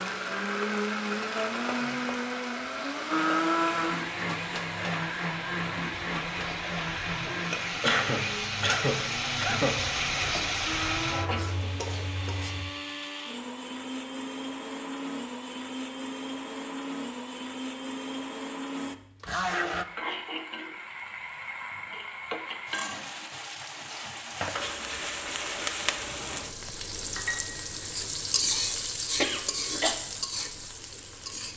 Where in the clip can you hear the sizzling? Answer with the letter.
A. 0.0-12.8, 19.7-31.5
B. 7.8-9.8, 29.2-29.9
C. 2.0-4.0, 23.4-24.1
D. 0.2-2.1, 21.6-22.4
A.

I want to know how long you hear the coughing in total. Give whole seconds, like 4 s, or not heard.
3 s.